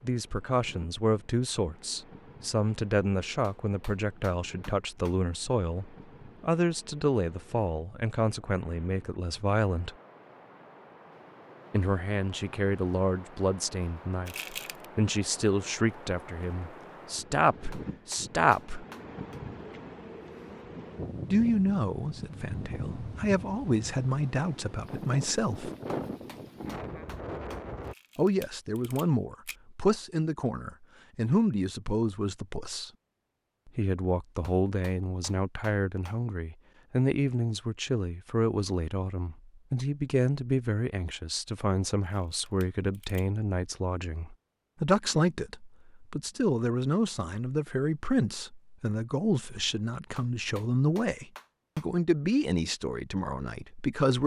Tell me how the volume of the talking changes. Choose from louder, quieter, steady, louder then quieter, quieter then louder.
steady.